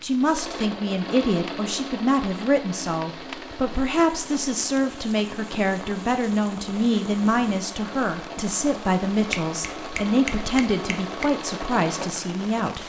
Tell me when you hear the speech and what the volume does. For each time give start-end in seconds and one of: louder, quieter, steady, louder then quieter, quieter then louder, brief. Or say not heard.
0.0-12.8 steady.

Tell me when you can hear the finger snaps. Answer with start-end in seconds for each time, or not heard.
9.3-11.3.